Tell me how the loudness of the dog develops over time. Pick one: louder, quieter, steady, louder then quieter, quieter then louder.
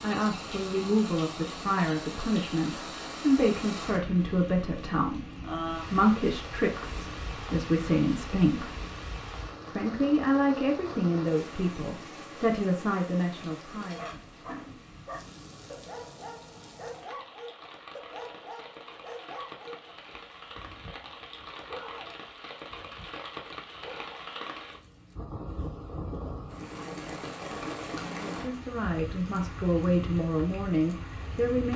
quieter.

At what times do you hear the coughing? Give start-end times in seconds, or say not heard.
not heard.